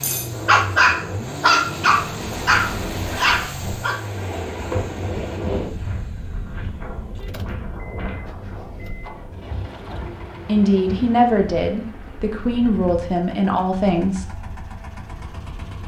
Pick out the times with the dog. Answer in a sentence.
You can hear the dog from 0.0 to 4.0 s.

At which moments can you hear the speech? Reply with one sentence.
You can hear the speech from 10.4 to 14.2 s.